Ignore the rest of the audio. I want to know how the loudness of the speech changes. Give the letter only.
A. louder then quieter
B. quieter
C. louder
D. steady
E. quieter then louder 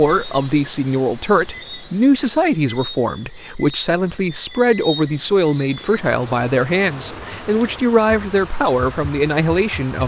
D.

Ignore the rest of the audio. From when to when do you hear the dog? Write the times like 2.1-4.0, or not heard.
not heard.